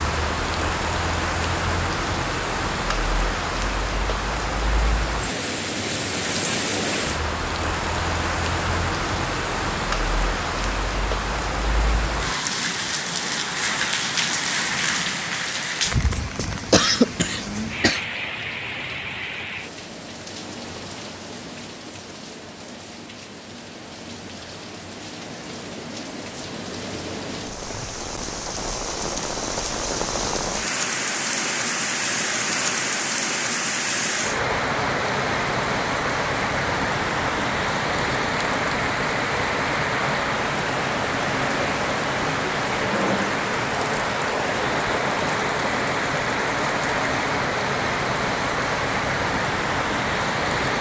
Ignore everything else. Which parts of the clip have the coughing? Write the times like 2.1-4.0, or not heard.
16.7-18.0.